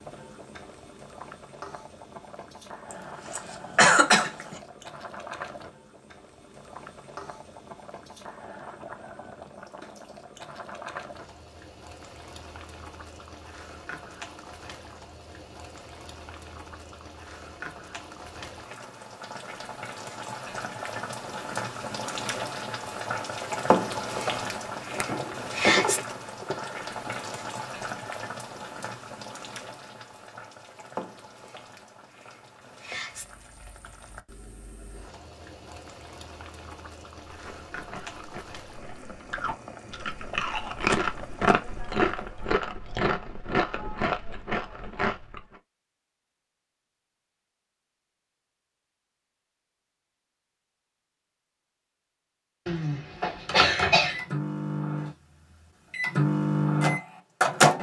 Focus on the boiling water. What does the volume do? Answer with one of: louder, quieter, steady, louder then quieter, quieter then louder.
louder then quieter.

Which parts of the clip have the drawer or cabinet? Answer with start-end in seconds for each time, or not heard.
24.6-27.1.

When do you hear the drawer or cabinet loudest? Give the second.
26 s.